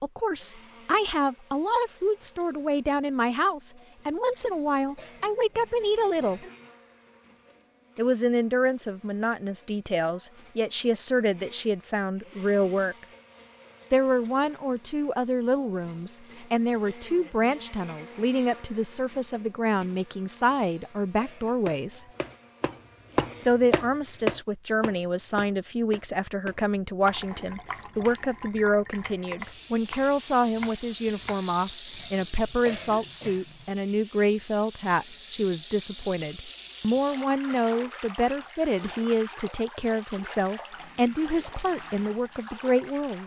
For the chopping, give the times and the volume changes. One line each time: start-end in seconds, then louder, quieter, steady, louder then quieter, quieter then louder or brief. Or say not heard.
21.6-32.0 quieter.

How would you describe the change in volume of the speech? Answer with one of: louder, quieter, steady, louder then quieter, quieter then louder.
steady.